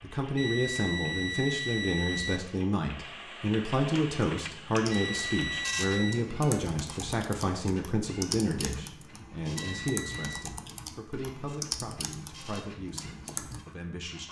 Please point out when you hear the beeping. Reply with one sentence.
You can hear the beeping from 0.3 to 2.4 s, from 4.9 to 6.2 s and from 9.6 to 10.4 s.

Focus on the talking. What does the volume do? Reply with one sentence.
The loudness of the talking goes down.